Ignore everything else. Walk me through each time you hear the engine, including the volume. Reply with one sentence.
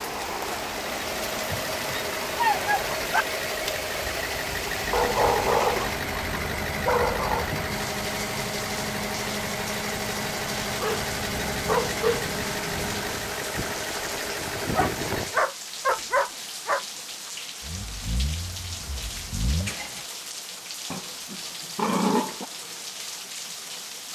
You can hear the engine from 0.0 to 15.4 s, at a steady volume; and briefly from 17.6 to 20.1 s.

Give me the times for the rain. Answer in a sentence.
You can hear the rain from 0.0 to 24.1 s.